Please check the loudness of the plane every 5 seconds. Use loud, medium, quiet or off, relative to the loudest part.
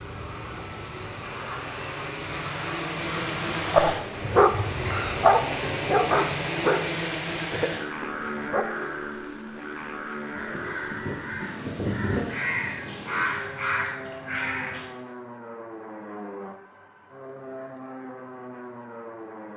loud, loud, medium, medium.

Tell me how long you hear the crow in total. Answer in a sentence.
The crow can be heard for 10 seconds in total.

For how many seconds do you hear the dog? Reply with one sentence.
You can hear the dog for 6 seconds altogether.